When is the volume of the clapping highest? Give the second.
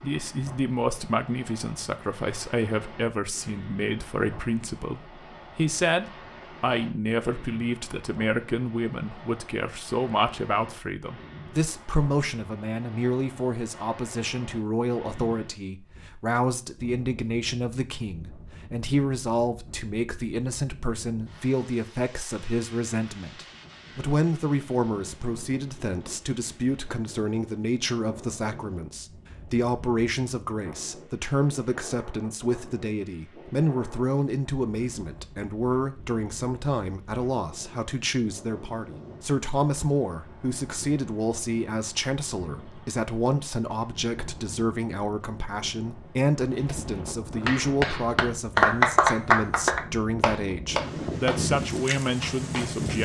49 s.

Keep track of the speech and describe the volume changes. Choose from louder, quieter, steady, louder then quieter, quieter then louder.
steady.